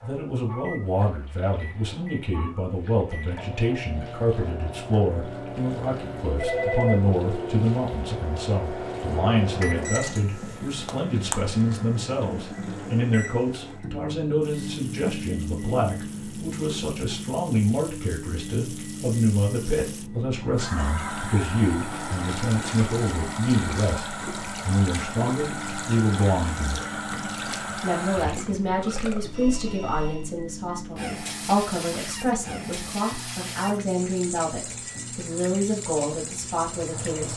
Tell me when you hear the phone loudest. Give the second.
7 s.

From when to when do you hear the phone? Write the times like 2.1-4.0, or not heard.
6.3-7.5, 29.3-30.3.